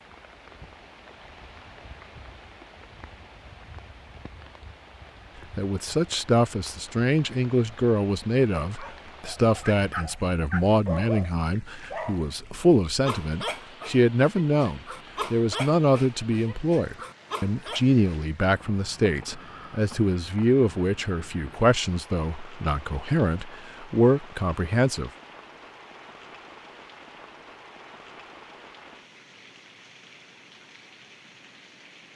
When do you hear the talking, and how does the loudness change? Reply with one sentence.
You can hear the talking from 5.5 to 25.1 s, at a steady volume.